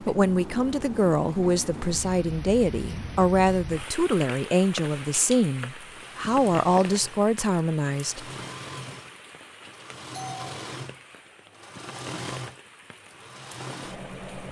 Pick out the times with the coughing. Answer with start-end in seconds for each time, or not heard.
not heard.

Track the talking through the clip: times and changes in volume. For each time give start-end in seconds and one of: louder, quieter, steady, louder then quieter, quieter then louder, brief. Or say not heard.
0.0-8.2 steady.